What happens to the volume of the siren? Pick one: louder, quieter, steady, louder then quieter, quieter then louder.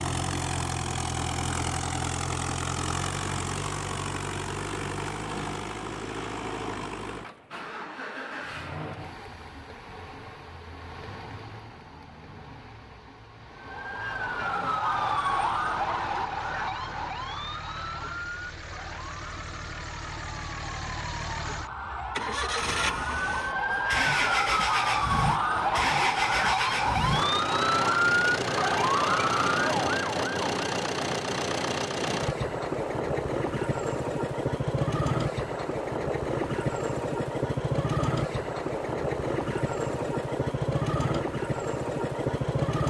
quieter then louder.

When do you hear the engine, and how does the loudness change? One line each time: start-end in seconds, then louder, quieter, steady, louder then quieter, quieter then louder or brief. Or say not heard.
0.0-42.8 quieter then louder.